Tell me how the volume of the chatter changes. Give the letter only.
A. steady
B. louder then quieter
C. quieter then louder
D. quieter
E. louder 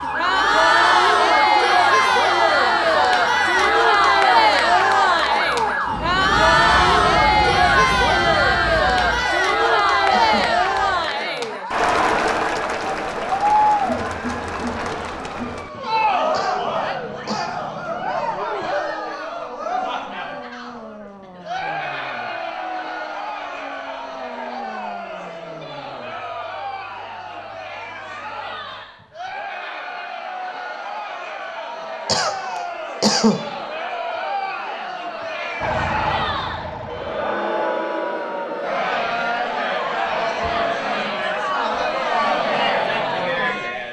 C.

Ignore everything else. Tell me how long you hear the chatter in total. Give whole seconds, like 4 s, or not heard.
44 s.